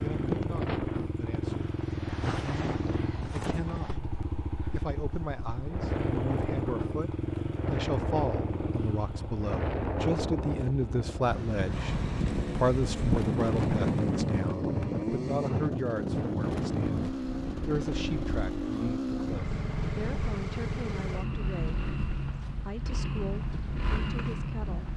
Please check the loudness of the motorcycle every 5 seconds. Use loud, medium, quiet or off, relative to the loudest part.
loud, loud, medium, loud, loud.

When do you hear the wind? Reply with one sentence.
You can hear the wind from 0.0 to 24.9 s.